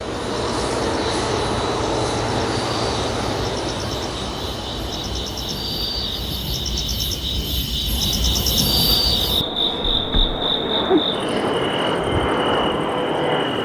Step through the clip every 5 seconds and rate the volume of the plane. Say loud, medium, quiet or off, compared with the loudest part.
loud, medium, loud.